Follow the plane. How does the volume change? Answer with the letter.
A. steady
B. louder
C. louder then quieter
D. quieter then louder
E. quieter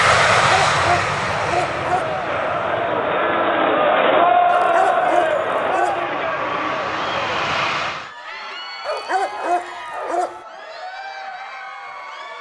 D.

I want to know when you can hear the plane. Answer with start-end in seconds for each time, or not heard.
0.0-8.1.